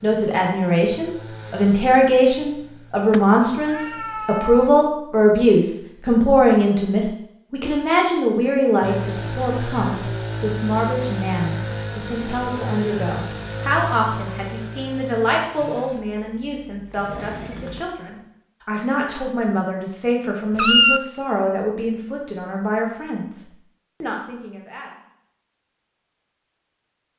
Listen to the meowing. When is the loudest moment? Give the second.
21 s.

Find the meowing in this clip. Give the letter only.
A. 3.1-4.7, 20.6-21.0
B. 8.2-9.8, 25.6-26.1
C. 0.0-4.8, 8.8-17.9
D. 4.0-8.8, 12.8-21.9
A.